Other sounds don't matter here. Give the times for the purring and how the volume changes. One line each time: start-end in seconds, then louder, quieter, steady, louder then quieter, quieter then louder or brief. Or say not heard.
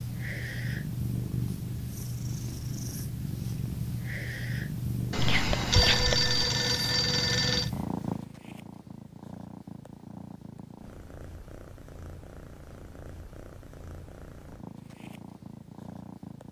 0.0-16.4 quieter.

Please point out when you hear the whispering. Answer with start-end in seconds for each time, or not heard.
5.2-6.3.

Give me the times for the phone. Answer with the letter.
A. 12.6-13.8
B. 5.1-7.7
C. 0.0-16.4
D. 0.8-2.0
B.